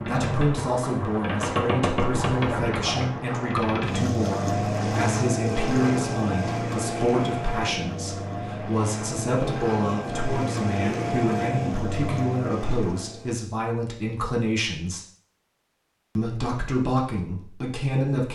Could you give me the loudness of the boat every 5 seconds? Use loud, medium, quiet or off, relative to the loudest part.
loud, loud, loud, off.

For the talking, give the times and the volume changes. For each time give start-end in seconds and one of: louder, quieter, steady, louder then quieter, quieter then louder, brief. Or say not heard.
0.1-15.0 steady
16.1-18.3 brief.